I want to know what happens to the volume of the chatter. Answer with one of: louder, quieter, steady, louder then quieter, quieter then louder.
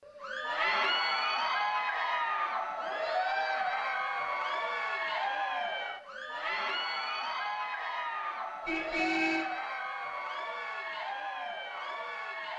quieter.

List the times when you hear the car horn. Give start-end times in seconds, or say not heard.
8.7-9.4.